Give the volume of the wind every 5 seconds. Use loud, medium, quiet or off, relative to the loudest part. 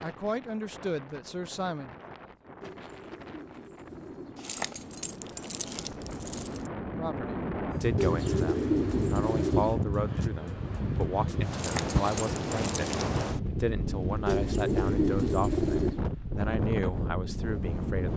quiet, loud, loud, loud.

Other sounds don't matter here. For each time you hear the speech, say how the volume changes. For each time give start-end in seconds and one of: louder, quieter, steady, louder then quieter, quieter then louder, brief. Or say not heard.
0.0-1.9 brief
7.0-18.1 steady.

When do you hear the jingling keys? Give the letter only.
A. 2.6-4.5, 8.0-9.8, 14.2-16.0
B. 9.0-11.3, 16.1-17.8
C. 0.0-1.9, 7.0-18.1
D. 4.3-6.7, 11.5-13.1
D.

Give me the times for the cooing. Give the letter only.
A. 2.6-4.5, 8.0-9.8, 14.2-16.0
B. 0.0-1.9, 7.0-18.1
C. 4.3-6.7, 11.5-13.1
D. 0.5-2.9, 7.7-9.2
A.